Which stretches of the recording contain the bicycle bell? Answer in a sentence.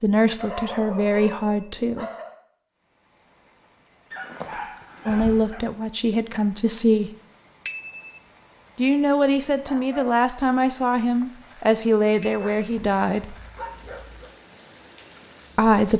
You can hear the bicycle bell from 1.2 to 1.8 s, from 7.7 to 8.2 s and from 12.2 to 12.6 s.